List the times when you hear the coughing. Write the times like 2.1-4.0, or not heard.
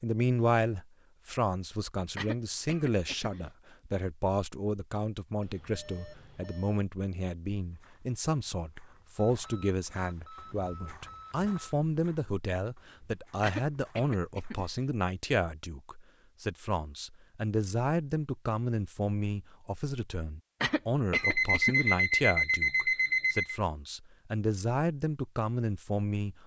2.1-3.4, 13.4-14.8, 20.6-21.9.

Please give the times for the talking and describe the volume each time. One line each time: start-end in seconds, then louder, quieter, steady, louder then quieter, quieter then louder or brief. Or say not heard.
0.0-26.4 steady.